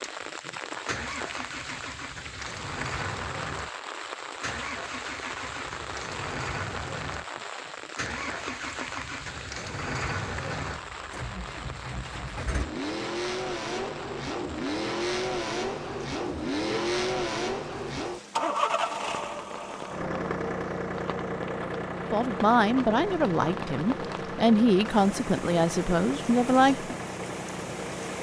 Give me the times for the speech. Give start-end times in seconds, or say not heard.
21.9-26.9.